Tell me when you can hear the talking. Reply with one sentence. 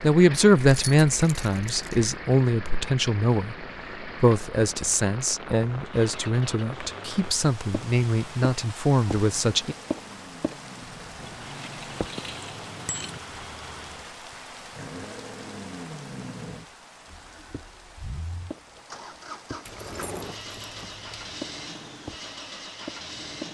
The talking can be heard from 0.0 to 9.8 s.